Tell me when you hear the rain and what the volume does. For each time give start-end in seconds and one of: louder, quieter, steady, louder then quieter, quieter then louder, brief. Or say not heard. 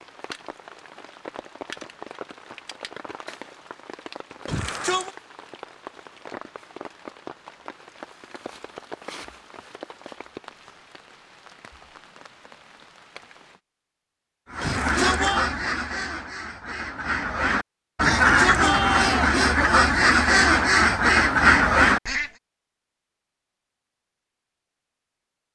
0.0-13.6 quieter.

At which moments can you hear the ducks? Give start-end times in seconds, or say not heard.
14.5-22.3.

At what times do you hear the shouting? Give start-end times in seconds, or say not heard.
4.5-5.1, 14.6-15.4, 18.0-19.4.